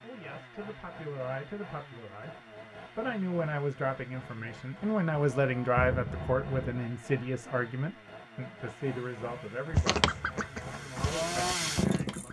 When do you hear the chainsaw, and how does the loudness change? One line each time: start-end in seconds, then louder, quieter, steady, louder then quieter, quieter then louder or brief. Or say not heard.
0.0-12.2 louder.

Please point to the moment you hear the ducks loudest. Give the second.
10 s.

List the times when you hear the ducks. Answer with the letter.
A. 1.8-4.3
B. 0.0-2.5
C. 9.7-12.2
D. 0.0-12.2
C.